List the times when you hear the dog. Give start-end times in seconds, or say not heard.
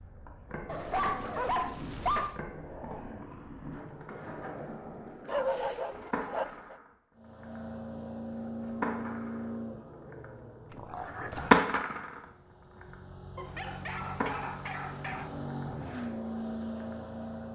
0.7-2.4, 5.2-6.8, 10.7-11.6, 13.3-15.3.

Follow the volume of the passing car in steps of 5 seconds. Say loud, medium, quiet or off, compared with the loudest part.
off, loud, medium, loud.